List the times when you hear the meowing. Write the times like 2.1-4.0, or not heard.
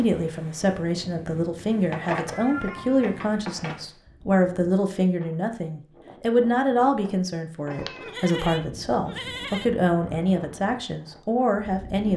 1.9-3.9, 7.7-8.2.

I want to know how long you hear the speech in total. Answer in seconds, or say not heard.
12 s.